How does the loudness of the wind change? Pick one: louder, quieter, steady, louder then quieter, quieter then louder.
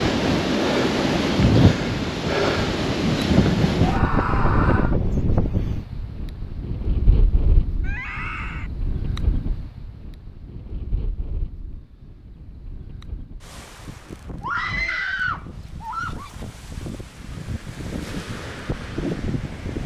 quieter then louder.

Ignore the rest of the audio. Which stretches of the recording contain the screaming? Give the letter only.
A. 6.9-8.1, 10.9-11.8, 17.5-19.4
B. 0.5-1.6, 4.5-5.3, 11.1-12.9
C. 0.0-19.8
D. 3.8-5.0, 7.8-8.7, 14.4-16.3
D.